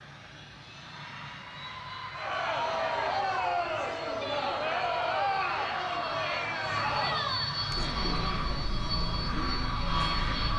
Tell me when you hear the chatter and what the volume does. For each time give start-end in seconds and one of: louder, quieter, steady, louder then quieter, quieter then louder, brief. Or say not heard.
2.1-10.5 quieter.